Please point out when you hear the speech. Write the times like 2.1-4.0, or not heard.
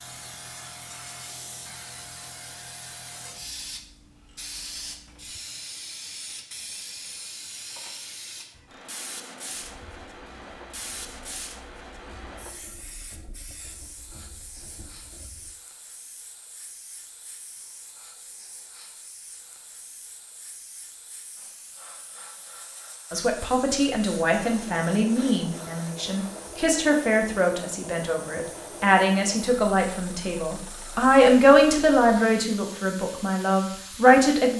23.1-34.5.